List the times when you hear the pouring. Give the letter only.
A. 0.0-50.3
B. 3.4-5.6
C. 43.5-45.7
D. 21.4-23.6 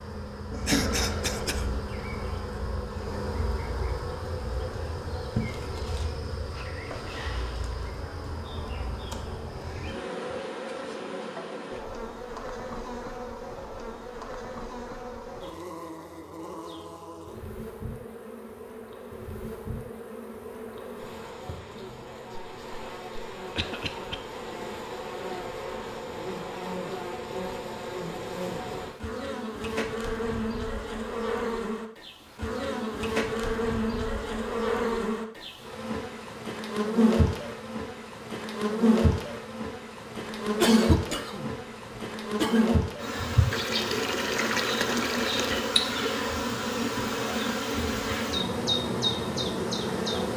C.